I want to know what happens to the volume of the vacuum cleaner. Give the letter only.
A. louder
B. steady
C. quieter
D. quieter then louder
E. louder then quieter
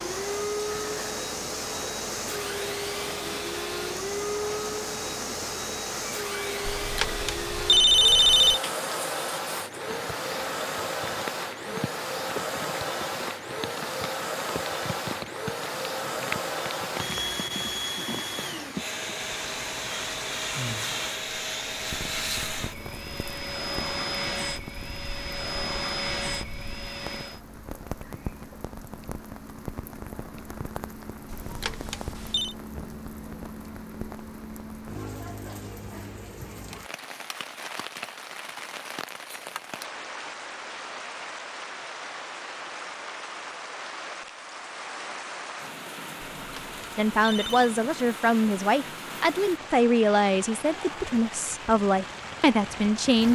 B.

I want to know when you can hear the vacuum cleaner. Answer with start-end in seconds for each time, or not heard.
0.0-27.4.